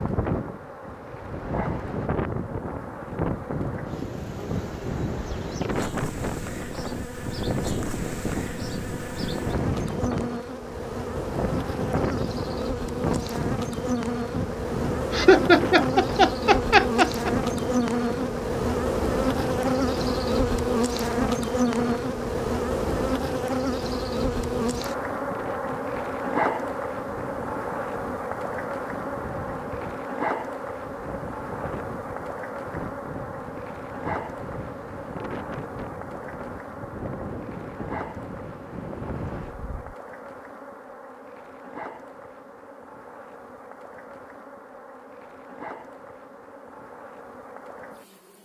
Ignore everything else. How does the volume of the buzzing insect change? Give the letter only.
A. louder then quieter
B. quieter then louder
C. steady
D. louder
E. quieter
A.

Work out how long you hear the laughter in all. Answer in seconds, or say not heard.
2 s.